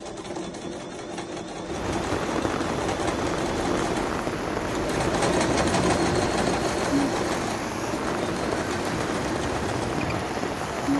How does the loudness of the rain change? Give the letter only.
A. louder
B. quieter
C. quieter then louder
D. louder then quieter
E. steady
E.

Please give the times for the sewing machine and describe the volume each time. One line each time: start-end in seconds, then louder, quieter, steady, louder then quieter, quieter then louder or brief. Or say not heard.
0.0-10.9 louder then quieter.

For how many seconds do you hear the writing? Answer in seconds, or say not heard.
not heard.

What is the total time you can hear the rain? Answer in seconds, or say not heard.
9 s.